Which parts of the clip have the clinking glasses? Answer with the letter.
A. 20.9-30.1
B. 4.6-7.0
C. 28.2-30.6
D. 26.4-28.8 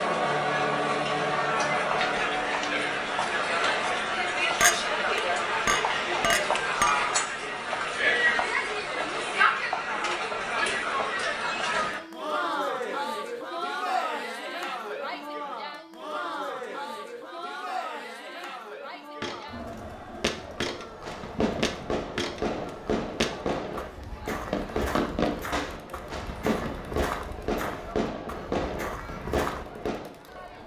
B.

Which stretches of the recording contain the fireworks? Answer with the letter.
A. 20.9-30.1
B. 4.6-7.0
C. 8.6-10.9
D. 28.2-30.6
A.